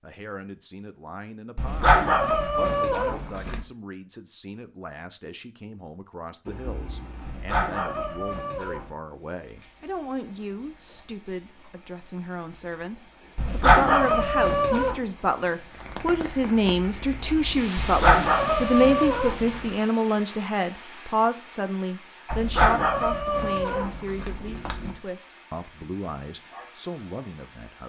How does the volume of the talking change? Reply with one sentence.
The loudness of the talking goes up, then down.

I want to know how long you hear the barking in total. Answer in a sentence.
You can hear the barking for 10 seconds altogether.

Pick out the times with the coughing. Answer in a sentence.
The coughing can be heard from 6.5 to 7.5 s.